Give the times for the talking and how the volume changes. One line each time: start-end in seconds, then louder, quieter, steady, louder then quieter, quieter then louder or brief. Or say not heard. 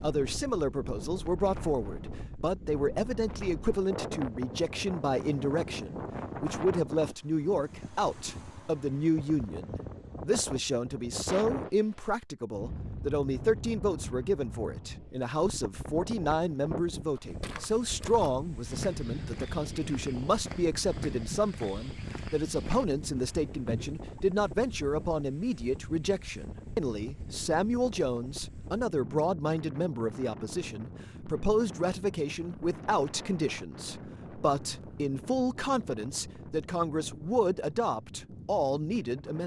0.0-39.4 steady.